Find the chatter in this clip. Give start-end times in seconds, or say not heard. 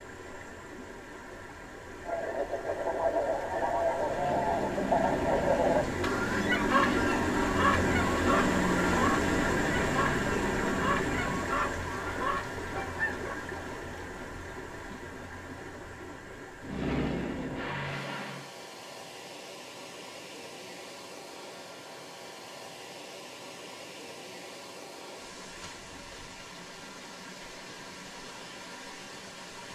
not heard.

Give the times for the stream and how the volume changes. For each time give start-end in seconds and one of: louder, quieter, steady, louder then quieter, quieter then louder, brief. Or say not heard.
0.0-29.7 louder then quieter.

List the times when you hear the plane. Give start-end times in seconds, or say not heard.
4.0-11.6, 16.6-18.5.